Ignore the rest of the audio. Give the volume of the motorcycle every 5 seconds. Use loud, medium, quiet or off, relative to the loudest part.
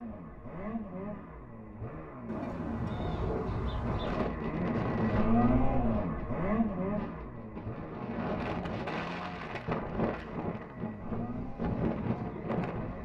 medium, loud, medium.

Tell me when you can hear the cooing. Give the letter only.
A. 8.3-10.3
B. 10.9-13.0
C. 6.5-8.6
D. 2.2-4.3
D.